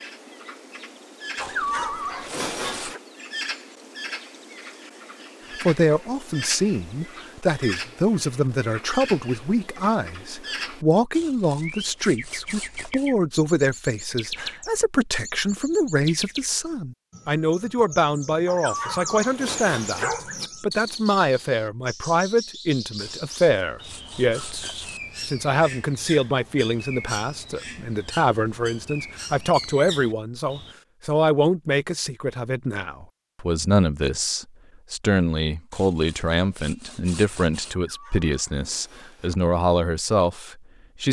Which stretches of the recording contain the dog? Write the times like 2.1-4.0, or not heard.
1.4-3.0, 18.4-20.5, 37.7-39.4.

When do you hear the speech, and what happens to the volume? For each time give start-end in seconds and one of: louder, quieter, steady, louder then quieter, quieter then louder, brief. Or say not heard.
5.6-41.0 steady.